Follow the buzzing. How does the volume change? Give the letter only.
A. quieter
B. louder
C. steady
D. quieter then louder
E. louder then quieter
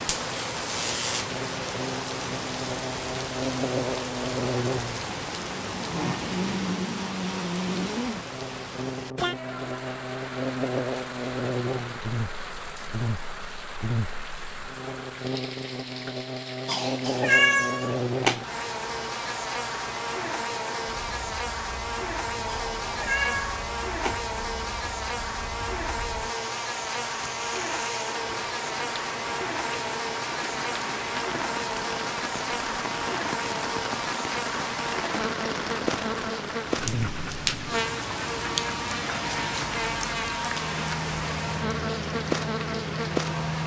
C.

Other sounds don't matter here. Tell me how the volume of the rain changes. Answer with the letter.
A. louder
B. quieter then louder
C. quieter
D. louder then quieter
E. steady
B.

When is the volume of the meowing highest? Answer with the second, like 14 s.
17 s.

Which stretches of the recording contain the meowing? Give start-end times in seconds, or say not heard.
16.6-18.4, 22.4-24.2.